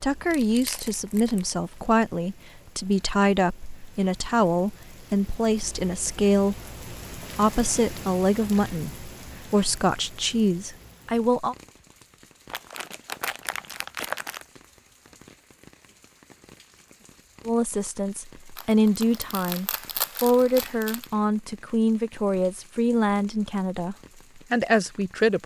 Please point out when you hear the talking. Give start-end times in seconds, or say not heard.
0.0-11.6, 17.4-25.4.